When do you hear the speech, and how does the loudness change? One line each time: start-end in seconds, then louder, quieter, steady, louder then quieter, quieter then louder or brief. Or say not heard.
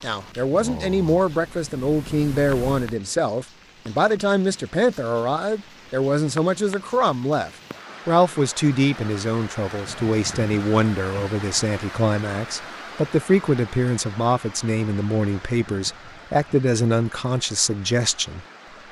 0.0-18.4 steady.